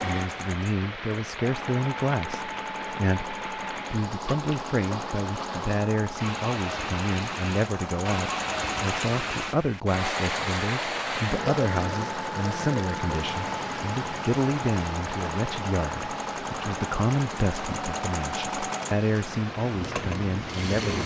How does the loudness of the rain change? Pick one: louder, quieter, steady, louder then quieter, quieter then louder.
louder then quieter.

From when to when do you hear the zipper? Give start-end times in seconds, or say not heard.
not heard.